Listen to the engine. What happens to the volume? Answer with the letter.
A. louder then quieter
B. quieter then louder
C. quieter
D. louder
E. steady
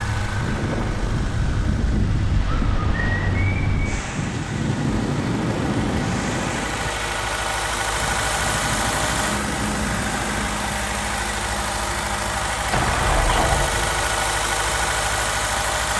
D.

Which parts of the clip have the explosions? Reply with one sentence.
The explosions can be heard from 12.6 to 14.0 s.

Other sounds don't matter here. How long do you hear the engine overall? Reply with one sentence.
You can hear the engine for 16 seconds altogether.